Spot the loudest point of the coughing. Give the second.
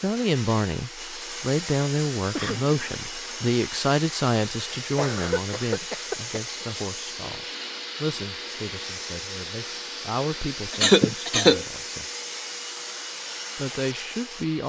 11 s.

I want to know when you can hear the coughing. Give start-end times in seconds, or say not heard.
2.4-2.8, 5.0-6.7, 10.8-11.6.